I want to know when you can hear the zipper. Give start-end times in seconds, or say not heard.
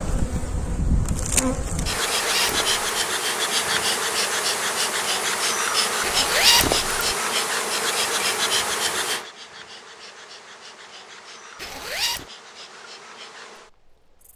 2.0-2.8, 6.0-7.2, 11.6-12.2.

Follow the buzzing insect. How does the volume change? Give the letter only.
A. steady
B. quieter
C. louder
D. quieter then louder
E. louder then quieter
B.